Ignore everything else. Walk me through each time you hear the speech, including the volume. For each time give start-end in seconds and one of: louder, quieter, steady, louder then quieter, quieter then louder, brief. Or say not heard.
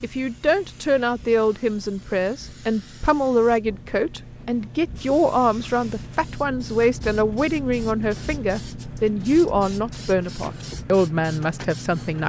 0.0-12.2 steady.